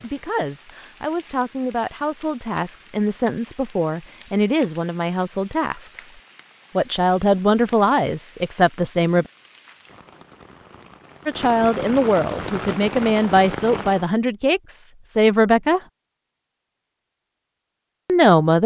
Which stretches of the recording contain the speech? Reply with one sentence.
The speech can be heard from 0.0 to 6.1 s, from 6.8 to 9.2 s, from 11.2 to 15.8 s and from 18.1 to 18.6 s.